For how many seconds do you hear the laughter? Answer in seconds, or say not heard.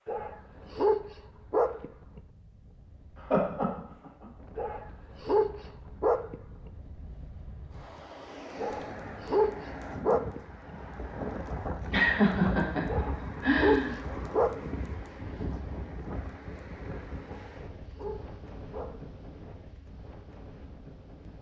3 s.